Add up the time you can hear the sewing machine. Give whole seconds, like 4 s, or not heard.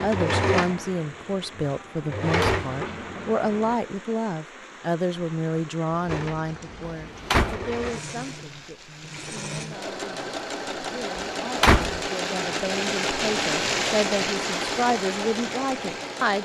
14 s.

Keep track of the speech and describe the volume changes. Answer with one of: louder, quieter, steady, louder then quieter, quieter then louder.
quieter then louder.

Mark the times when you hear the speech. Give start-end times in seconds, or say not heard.
0.0-16.4.